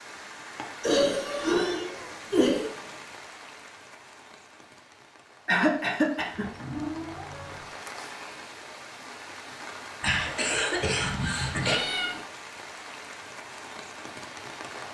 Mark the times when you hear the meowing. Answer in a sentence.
The meowing can be heard from 1.3 to 3.1 s, from 6.3 to 7.7 s and from 11.6 to 12.2 s.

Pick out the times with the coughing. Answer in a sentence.
The coughing can be heard from 0.8 to 2.7 s, from 5.5 to 6.5 s and from 10.0 to 11.8 s.